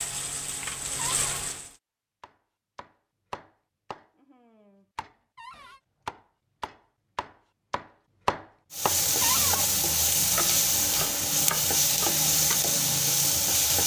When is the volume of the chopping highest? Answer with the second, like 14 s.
8 s.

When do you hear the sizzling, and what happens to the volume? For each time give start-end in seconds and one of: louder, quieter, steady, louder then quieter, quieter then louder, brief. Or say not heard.
0.0-1.8 brief
8.7-13.8 steady.